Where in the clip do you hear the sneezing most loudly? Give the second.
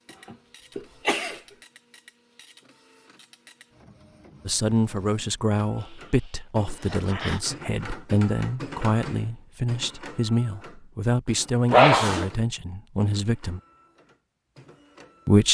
12 s.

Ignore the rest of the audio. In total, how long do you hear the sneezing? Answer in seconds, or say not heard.
3 s.